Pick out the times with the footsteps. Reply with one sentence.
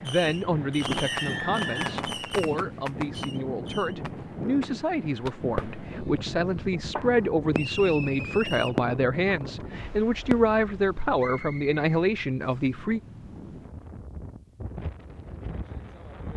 The footsteps can't be heard in this clip.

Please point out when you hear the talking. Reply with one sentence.
The talking can be heard from 0.0 to 13.0 s.